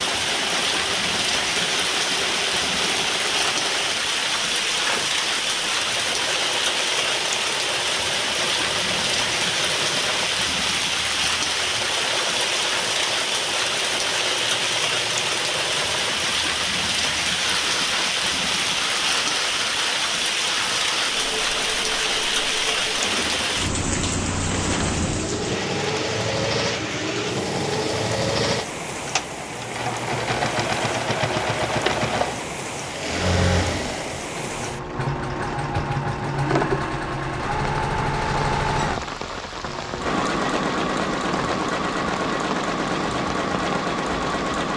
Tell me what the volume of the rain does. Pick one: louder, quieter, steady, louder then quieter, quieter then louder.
quieter.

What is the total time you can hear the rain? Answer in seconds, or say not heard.
45 s.